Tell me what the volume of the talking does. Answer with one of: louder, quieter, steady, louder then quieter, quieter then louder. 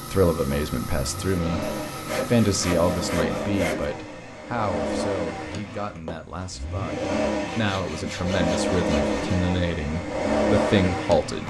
quieter then louder.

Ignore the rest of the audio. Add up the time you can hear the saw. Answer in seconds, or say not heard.
4 s.